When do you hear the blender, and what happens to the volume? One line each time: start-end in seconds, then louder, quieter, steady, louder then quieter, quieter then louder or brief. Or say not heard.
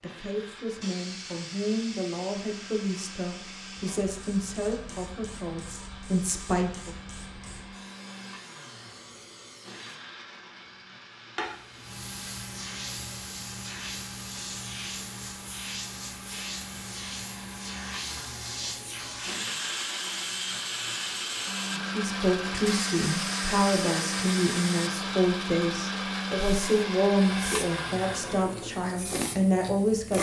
0.0-30.1 louder.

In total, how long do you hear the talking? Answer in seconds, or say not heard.
15 s.